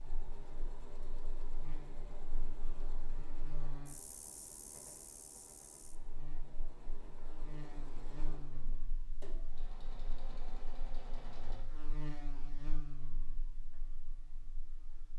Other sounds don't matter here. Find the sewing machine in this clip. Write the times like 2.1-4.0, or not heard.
0.0-11.6.